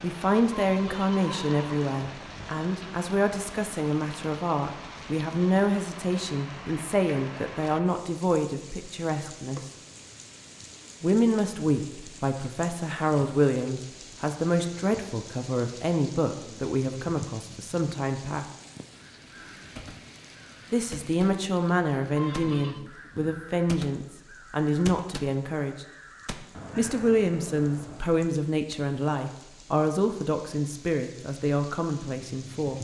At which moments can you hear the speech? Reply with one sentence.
The speech can be heard from 0.0 to 9.7 s, from 11.0 to 18.4 s, from 20.7 to 25.9 s and from 26.8 to 32.7 s.